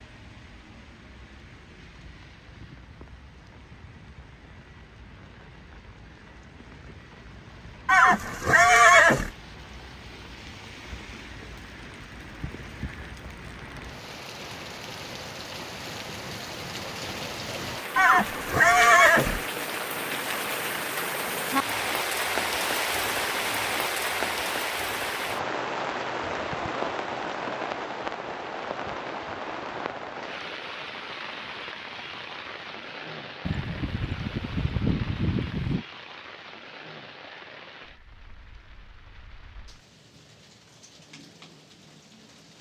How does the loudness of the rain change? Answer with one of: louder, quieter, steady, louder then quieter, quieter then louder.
louder then quieter.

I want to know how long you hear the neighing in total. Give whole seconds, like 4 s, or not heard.
5 s.